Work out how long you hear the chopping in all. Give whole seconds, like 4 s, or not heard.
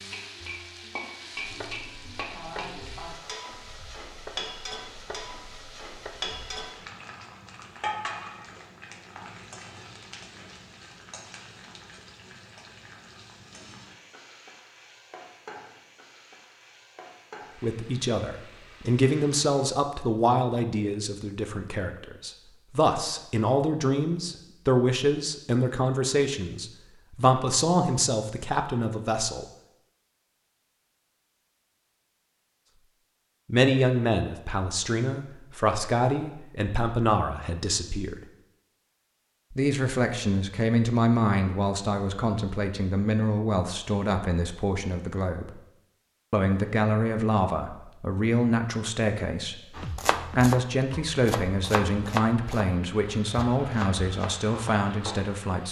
10 s.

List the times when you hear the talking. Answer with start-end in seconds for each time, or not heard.
17.6-29.4, 33.5-38.2, 39.5-45.5, 46.3-55.6.